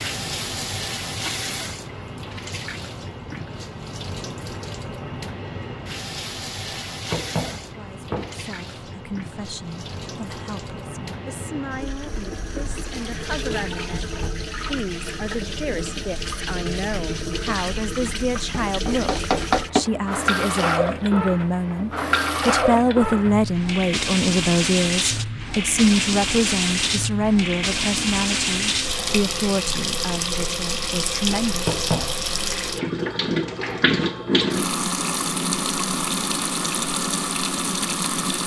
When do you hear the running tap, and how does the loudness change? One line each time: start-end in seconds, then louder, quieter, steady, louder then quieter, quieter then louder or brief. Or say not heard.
0.0-38.4 louder.